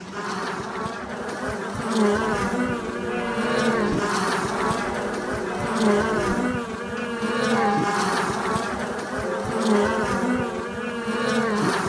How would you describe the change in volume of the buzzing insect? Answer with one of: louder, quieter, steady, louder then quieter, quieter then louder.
steady.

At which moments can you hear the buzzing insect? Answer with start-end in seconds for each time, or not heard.
0.0-11.8.